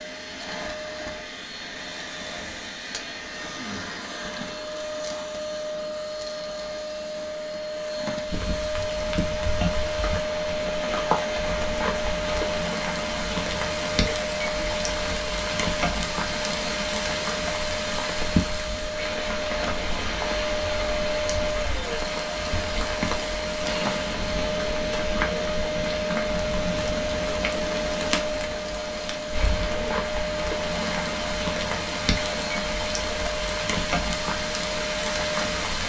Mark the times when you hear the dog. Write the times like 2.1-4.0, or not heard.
not heard.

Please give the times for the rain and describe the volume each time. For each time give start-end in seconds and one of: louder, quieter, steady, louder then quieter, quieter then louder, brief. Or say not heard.
8.2-35.8 steady.